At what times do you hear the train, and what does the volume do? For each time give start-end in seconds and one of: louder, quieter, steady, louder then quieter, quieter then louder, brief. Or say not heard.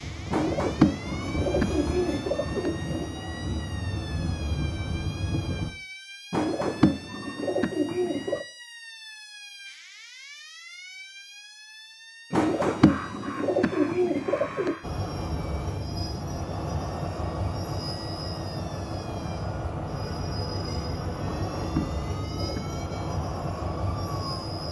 0.0-5.7 steady
14.8-24.6 steady.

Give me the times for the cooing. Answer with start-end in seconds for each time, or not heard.
0.3-3.1, 6.3-8.4, 12.3-14.8, 21.2-22.8.